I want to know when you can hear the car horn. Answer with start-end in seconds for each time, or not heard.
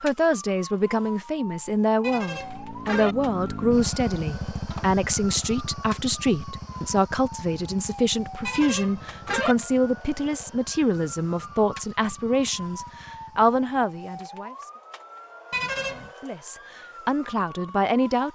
2.0-3.1, 8.4-9.6, 15.5-16.1.